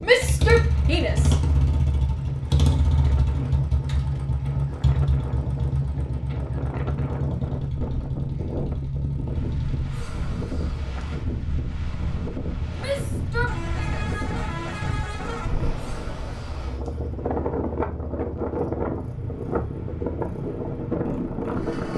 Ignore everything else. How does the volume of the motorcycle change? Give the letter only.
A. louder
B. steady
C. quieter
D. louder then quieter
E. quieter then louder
C.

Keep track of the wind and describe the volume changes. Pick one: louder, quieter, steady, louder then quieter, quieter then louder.
louder.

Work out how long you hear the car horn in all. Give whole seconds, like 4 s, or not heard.
2 s.